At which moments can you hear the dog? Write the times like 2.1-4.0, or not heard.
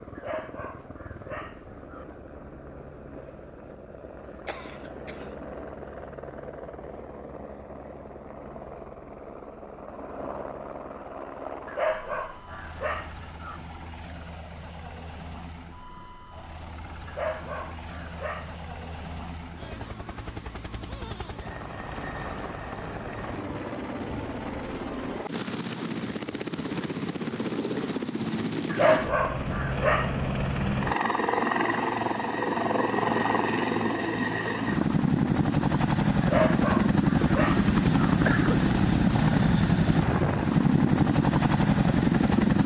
0.1-2.0, 11.7-13.6, 17.1-18.6, 28.7-30.1, 36.2-38.1.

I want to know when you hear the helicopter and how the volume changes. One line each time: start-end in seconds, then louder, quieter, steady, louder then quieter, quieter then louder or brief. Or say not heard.
0.0-42.6 louder.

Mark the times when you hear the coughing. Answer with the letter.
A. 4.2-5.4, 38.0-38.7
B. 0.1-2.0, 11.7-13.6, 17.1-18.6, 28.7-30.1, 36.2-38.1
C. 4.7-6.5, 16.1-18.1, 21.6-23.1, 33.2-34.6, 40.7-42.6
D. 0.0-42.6
A.